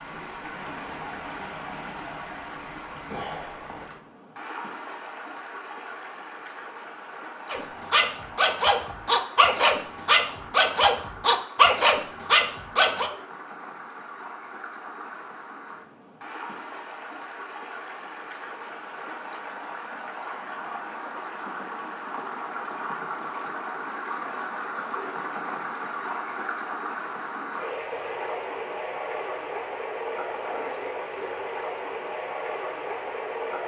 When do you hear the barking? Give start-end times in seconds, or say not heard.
7.5-13.1.